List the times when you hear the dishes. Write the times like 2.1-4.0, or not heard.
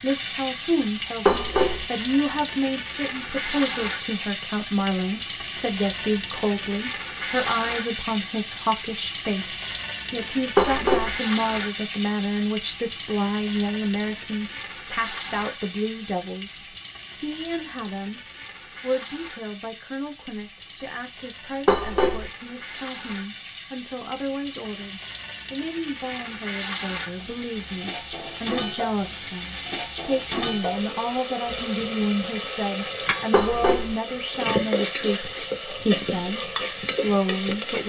1.2-1.9, 10.6-11.2, 21.6-22.3, 33.3-34.0.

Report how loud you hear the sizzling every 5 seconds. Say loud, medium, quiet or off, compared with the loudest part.
loud, loud, loud, medium, medium, loud, loud, loud.